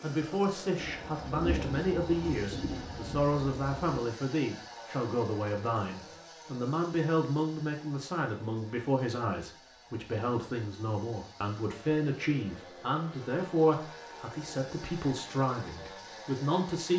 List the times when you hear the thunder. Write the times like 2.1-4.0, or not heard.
0.8-4.0.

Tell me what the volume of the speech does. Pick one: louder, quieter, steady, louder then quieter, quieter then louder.
steady.